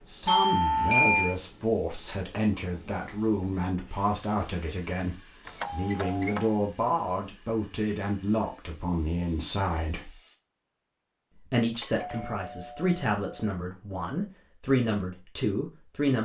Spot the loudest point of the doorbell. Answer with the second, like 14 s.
1 s.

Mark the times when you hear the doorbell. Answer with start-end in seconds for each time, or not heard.
0.2-1.4, 5.5-6.5, 11.8-13.5.